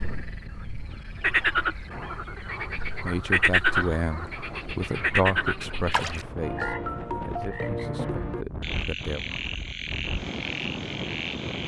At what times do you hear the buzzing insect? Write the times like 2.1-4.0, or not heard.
not heard.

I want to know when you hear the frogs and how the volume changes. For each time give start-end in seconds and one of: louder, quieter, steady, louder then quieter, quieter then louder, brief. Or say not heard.
0.0-11.6 quieter.